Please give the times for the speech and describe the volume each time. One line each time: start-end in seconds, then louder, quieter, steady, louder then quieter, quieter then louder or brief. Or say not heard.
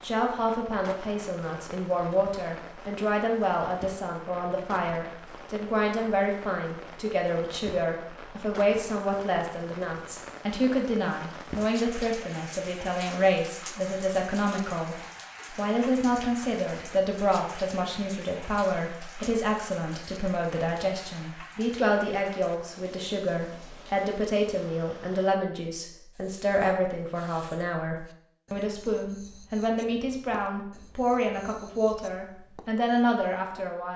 0.0-33.9 steady.